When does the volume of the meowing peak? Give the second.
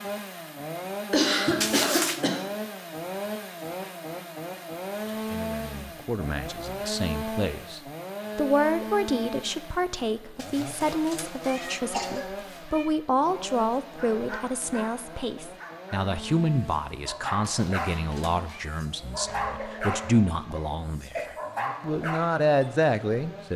2 s.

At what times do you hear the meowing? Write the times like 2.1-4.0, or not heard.
1.6-2.2, 10.3-12.9, 17.4-18.7.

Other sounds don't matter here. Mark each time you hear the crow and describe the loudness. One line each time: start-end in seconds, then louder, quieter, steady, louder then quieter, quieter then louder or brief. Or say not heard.
not heard.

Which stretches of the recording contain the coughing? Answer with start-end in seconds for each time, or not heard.
1.1-2.5, 11.6-12.3, 19.2-21.3.